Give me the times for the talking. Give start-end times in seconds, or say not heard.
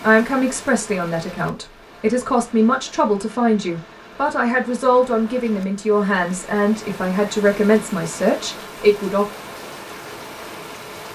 0.0-9.2.